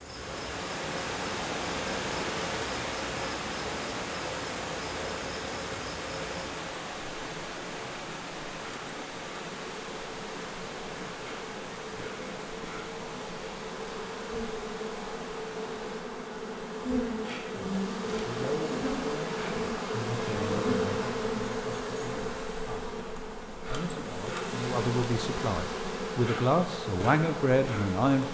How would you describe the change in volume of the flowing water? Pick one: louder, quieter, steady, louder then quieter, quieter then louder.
quieter.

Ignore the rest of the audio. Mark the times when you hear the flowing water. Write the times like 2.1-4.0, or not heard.
0.0-16.1.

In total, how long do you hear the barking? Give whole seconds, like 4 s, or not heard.
not heard.